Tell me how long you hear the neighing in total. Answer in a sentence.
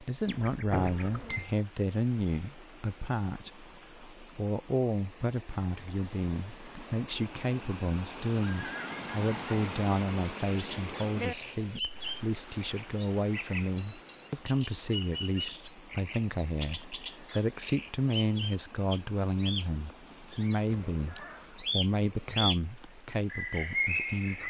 You can hear the neighing for 3 seconds altogether.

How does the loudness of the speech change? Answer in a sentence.
The volume of the speech stays about the same.